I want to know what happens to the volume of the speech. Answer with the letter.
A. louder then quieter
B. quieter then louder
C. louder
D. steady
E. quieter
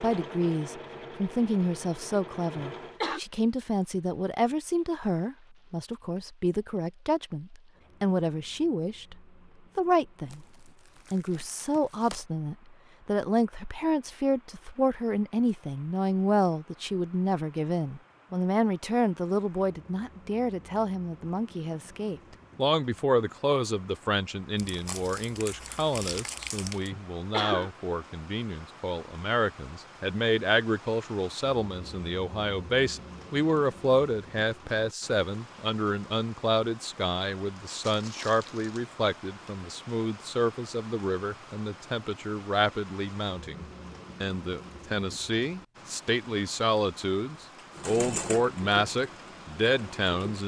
D.